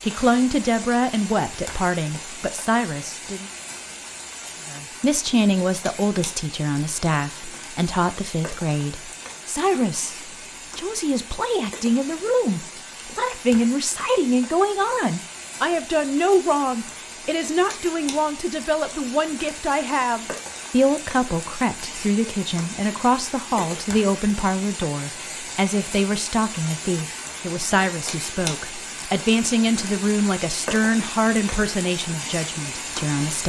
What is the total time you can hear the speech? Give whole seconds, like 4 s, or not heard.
32 s.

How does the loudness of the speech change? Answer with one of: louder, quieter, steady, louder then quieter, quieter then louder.
steady.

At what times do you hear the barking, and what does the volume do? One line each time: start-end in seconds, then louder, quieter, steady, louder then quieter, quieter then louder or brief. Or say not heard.
not heard.